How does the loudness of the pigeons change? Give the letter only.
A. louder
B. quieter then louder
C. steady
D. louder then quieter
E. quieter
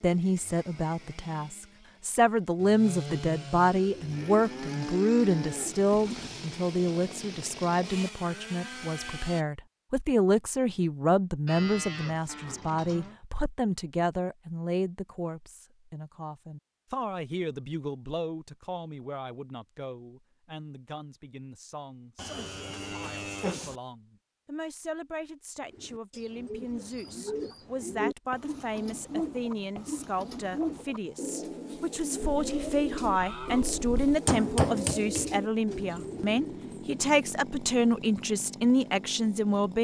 C.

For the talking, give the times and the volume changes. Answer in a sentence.
You can hear the talking from 0.0 to 39.8 s, getting quieter then louder.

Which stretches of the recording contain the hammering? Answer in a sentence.
The hammering can be heard from 34.2 to 35.4 s.